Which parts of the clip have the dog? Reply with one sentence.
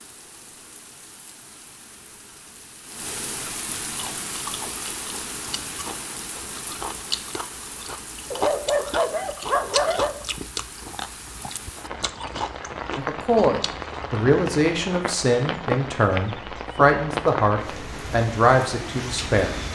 You can hear the dog from 8.3 to 10.2 s.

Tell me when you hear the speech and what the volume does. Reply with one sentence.
You can hear the speech from 12.9 to 19.7 s, at a steady volume.